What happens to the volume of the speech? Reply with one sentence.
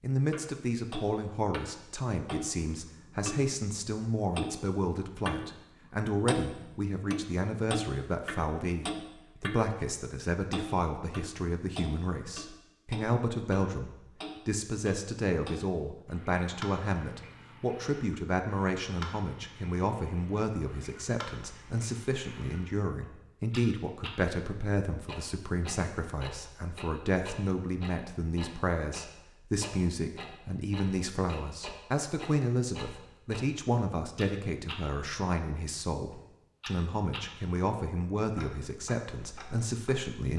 The loudness of the speech stays about the same.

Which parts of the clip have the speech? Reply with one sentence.
You can hear the speech from 0.0 to 40.3 s.